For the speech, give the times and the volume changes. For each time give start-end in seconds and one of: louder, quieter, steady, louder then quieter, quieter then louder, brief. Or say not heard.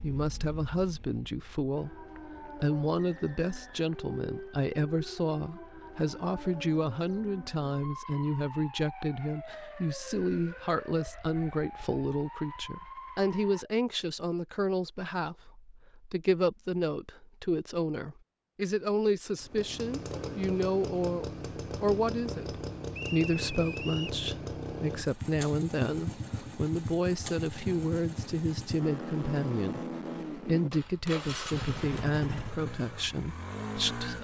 0.0-2.0 brief
2.6-34.1 steady.